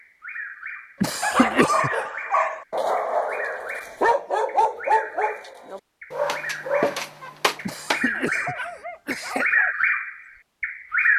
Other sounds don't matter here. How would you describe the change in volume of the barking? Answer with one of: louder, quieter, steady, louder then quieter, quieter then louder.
quieter.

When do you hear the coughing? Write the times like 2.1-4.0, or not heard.
1.0-2.0, 7.6-9.6.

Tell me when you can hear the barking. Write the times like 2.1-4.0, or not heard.
1.2-9.8.